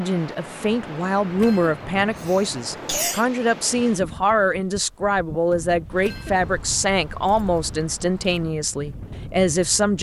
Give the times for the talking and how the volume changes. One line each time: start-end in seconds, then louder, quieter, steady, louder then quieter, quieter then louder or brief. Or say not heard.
0.0-9.9 steady.